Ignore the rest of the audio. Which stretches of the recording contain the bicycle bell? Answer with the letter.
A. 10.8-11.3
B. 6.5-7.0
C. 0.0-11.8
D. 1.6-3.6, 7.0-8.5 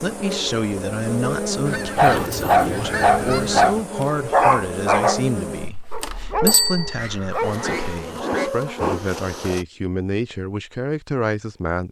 B.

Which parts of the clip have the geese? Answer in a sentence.
You can hear the geese from 1.6 to 3.6 s and from 7.0 to 8.5 s.